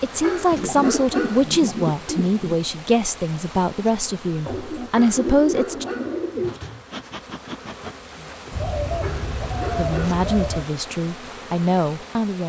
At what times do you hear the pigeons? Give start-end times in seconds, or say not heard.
0.6-2.5, 4.5-6.6, 8.5-10.7.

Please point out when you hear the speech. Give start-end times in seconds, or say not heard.
0.0-5.8, 9.8-12.4.